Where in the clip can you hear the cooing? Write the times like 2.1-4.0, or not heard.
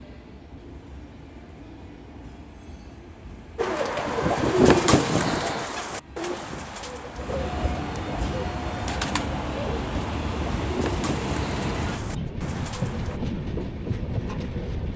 3.5-13.2.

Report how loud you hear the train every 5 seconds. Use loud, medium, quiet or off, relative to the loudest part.
quiet, loud, loud.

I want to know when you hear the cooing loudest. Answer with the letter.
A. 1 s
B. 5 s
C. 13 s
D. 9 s
B.